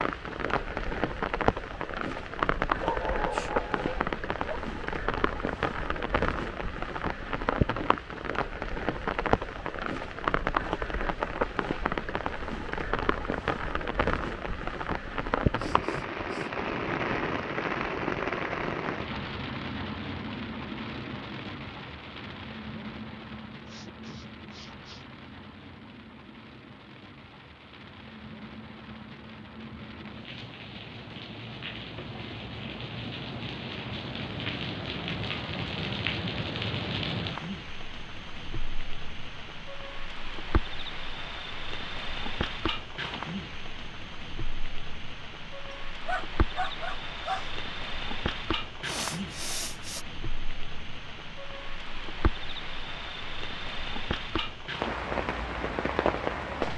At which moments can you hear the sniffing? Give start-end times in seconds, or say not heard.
15.6-16.5, 23.6-25.1, 48.8-50.0.